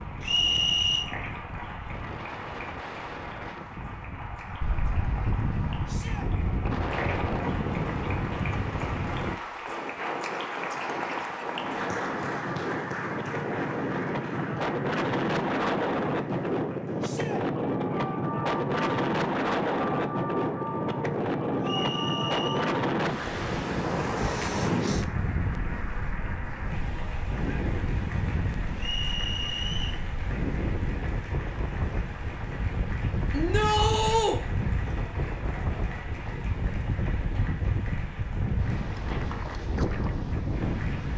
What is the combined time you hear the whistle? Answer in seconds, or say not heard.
3 s.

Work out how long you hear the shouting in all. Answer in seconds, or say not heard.
2 s.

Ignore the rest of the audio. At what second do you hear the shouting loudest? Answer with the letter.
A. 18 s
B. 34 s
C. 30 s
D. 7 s
B.